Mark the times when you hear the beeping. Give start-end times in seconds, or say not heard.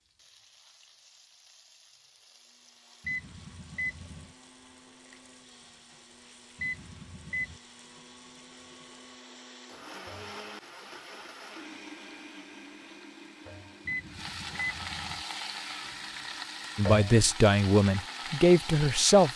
3.0-4.3, 6.5-7.6, 13.8-15.2.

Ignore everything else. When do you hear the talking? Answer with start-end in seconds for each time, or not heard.
16.8-19.3.